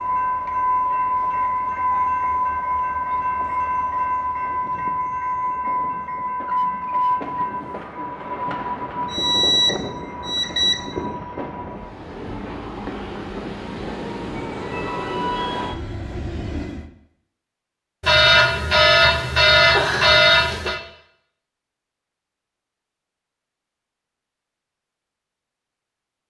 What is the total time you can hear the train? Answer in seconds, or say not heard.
17 s.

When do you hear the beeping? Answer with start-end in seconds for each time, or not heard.
9.1-10.8, 18.0-20.8.